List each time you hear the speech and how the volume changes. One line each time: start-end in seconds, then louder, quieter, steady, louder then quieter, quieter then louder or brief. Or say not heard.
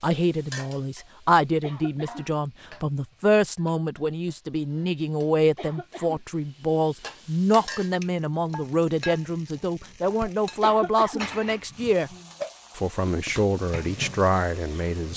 0.0-12.1 steady
12.8-15.1 brief.